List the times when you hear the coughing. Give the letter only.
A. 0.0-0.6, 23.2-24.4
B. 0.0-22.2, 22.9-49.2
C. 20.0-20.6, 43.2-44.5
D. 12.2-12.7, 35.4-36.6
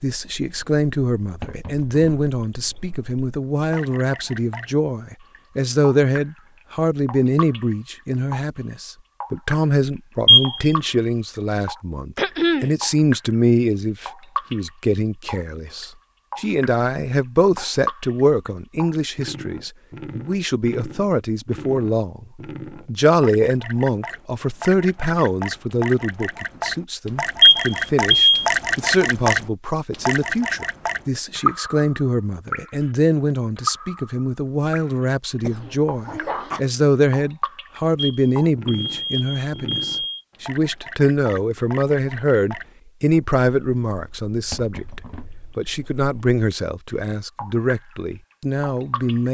D.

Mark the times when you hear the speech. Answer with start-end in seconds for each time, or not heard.
0.0-22.2, 22.9-49.2.